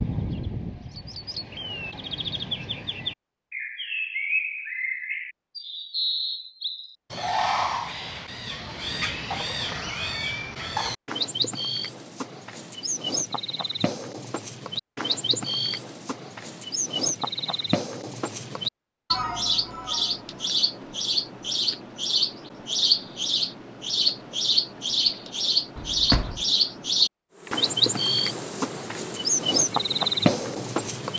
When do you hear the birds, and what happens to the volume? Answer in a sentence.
The birds can be heard from 0.0 to 31.1 s, getting louder.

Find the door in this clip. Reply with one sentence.
The door can be heard from 25.8 to 26.4 s.